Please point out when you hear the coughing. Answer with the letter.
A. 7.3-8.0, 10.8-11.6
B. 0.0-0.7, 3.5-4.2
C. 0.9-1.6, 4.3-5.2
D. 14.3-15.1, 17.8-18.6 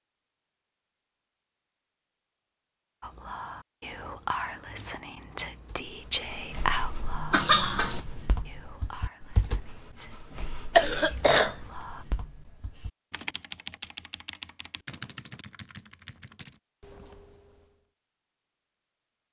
A.